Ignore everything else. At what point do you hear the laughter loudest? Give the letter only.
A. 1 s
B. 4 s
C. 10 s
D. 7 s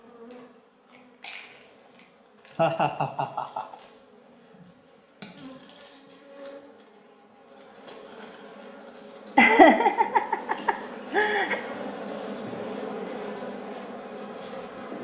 C.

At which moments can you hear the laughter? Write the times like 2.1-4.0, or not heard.
2.5-3.8, 9.3-11.6.